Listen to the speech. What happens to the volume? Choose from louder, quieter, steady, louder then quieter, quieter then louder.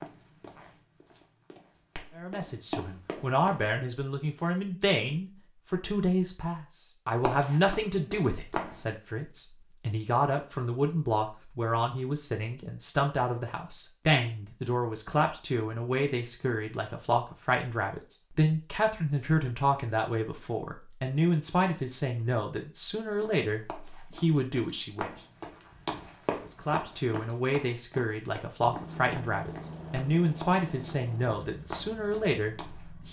steady.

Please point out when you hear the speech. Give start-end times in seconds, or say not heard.
2.1-25.1, 26.5-33.0.